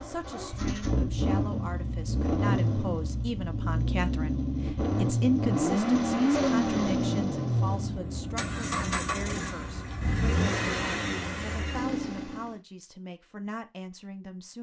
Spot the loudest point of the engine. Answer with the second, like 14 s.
6 s.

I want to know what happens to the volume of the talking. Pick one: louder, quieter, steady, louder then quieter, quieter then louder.
louder then quieter.